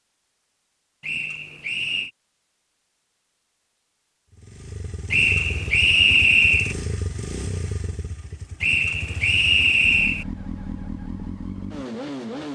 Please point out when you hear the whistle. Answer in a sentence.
You can hear the whistle from 1.0 to 2.1 s, from 5.1 to 6.8 s and from 8.6 to 10.2 s.